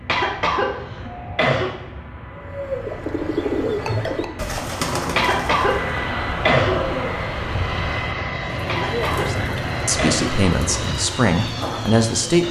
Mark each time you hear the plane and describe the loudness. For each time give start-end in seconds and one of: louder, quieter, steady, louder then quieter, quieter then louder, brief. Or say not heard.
0.0-12.4 louder.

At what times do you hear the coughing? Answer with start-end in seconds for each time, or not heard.
0.1-1.7, 5.2-6.8, 8.7-10.3.